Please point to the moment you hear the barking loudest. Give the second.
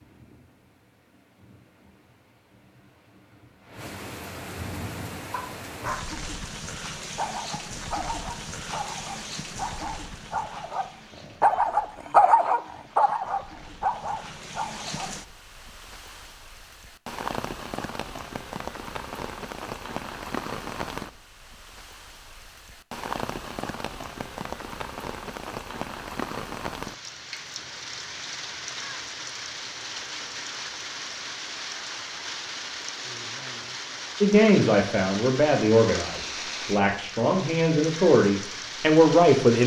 12 s.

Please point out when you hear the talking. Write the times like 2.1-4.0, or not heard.
34.2-39.6.